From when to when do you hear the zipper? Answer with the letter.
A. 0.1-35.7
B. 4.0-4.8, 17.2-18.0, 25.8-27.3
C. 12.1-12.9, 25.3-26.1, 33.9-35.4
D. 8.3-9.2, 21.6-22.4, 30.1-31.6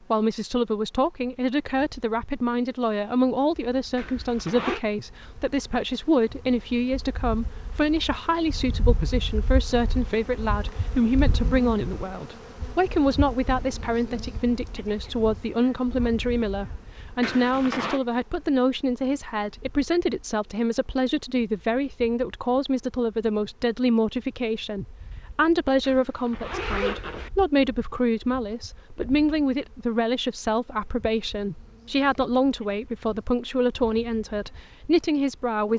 B.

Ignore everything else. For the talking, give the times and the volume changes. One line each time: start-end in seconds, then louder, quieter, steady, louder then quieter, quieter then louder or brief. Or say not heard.
0.1-35.7 steady.